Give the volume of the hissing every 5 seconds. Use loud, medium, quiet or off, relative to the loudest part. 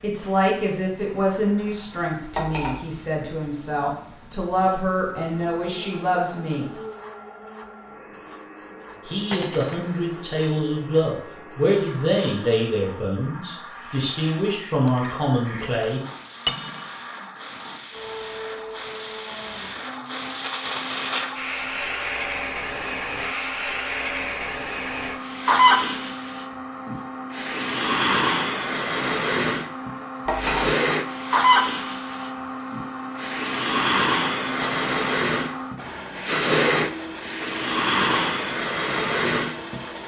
quiet, quiet, quiet, quiet, medium, loud, loud, loud.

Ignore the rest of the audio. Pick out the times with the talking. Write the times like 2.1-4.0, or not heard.
0.0-6.7, 9.1-16.0.